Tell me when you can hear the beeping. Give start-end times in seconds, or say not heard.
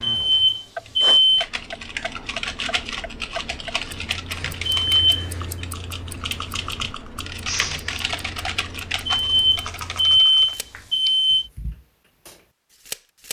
0.0-1.4, 4.7-5.2, 9.1-11.4.